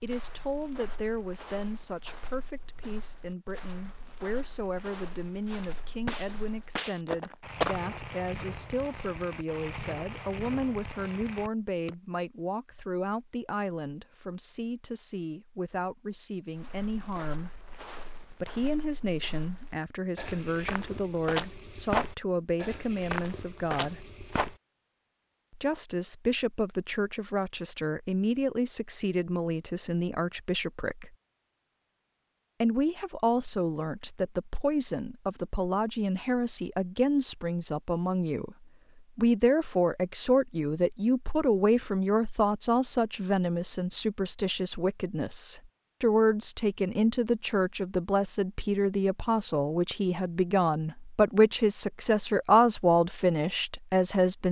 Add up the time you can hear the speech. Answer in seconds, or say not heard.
51 s.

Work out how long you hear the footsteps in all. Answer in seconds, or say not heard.
16 s.